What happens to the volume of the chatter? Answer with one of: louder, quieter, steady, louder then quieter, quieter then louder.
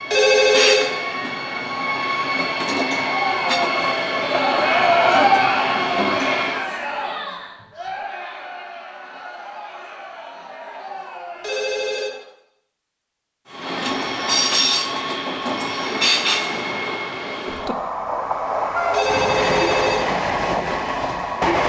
louder then quieter.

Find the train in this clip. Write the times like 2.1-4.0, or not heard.
0.0-6.7, 13.5-21.6.